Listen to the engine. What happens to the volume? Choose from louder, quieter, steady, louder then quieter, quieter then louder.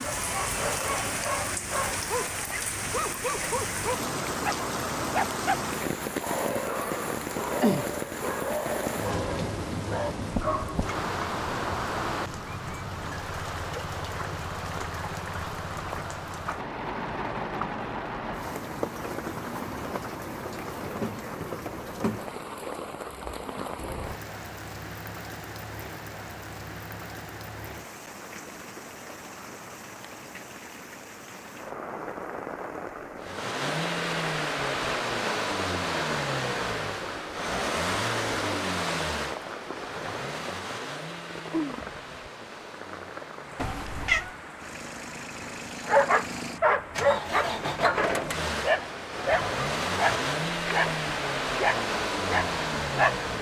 quieter then louder.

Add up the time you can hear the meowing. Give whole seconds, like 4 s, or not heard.
3 s.